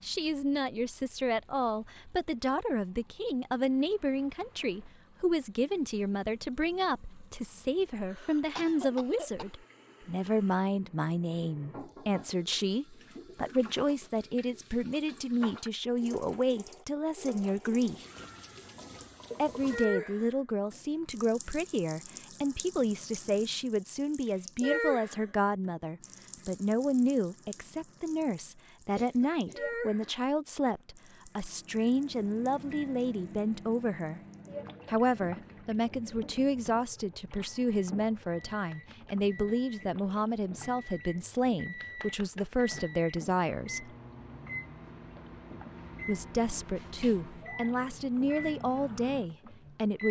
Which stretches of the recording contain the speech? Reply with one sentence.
You can hear the speech from 0.0 to 18.1 s, from 19.4 to 34.2 s, from 34.9 to 43.9 s and from 46.0 to 50.0 s.